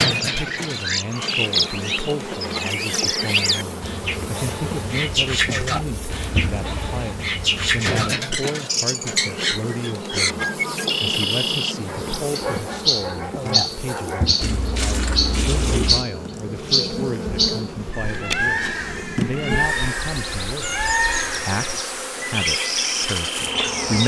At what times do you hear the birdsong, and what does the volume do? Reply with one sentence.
The birdsong can be heard from 0.0 to 24.0 s, at a steady volume.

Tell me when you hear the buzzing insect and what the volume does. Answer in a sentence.
You can hear the buzzing insect from 0.0 to 24.0 s, at a steady volume.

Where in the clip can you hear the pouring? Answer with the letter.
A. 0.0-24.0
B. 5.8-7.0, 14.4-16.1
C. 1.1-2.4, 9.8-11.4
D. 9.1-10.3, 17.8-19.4
B.